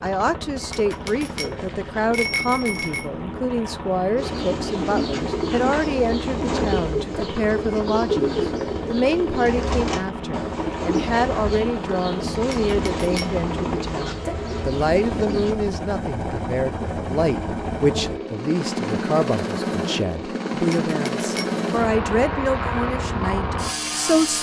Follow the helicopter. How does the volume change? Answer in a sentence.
The loudness of the helicopter goes up.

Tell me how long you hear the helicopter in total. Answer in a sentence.
The helicopter can be heard for 24 seconds in total.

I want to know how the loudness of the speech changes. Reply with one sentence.
The volume of the speech stays about the same.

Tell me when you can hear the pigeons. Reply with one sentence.
You can hear the pigeons from 4.2 to 15.6 s.